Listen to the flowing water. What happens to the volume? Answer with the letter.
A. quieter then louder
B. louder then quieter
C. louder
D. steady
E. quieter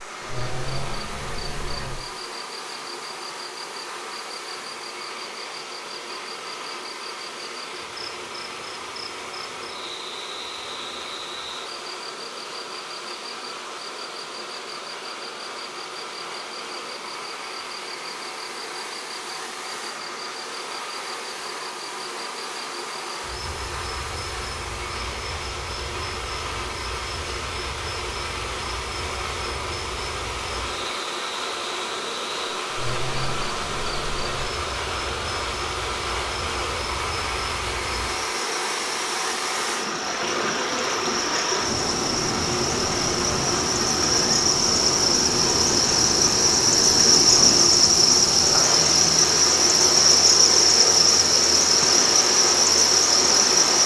C.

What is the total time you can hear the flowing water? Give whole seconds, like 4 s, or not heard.
54 s.